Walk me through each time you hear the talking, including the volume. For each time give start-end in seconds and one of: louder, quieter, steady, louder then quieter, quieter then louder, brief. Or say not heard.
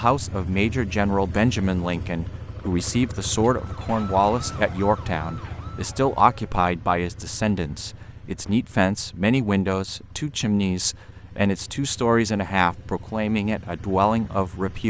0.0-14.8 steady.